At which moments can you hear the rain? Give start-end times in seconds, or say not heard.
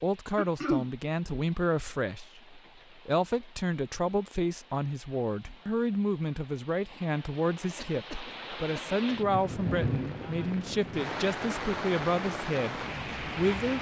0.0-13.7.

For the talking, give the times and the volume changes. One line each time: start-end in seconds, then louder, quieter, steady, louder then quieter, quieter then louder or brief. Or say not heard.
0.0-13.7 steady.